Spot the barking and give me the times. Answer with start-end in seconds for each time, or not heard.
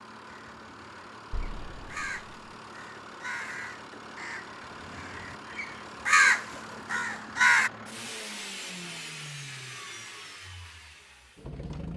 not heard.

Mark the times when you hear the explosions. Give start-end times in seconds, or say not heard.
1.3-2.5.